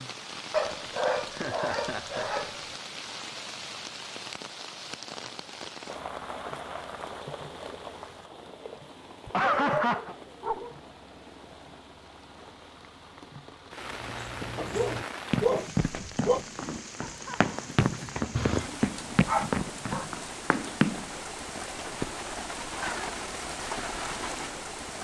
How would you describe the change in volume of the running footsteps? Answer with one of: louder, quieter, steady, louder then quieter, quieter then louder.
quieter then louder.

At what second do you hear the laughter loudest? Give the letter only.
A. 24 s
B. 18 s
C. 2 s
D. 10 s
D.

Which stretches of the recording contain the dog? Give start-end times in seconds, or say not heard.
0.5-2.8, 9.2-10.8, 14.6-16.4, 18.8-20.1.